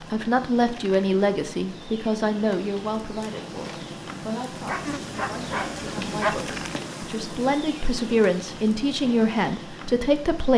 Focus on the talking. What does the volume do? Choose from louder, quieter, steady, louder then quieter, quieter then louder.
quieter then louder.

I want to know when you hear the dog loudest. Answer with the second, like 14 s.
6 s.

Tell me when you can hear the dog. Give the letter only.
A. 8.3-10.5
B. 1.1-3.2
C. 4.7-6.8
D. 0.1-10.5
C.